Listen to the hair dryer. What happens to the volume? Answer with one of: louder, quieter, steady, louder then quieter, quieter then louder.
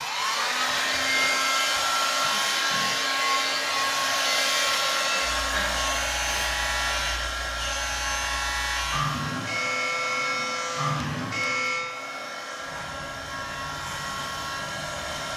quieter.